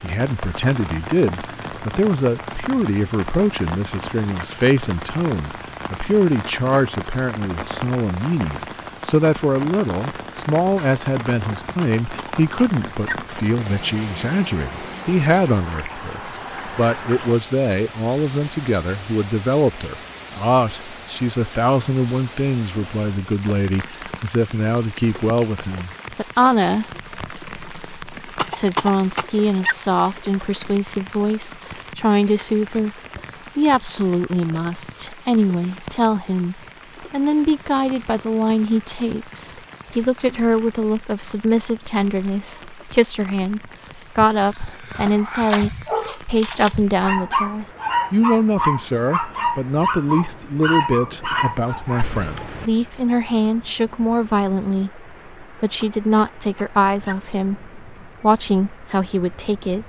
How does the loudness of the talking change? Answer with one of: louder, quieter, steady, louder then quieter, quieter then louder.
steady.